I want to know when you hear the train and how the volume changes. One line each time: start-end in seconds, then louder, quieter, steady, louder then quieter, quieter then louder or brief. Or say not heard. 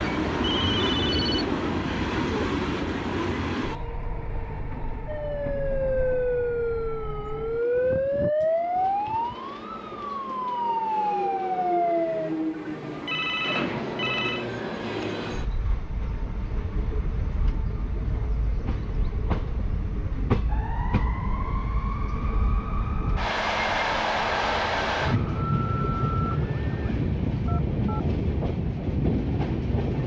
0.0-30.0 quieter then louder.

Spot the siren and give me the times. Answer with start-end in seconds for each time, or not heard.
5.0-12.3, 20.4-27.1.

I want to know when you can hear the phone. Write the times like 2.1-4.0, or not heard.
0.5-1.4, 12.6-14.4, 27.4-28.0.